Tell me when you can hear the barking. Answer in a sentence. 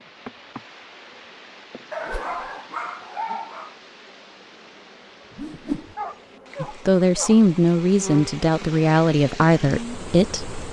The barking can be heard from 1.9 to 3.8 s and from 5.5 to 7.5 s.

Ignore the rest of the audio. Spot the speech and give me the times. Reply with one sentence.
The speech can be heard from 6.6 to 10.6 s.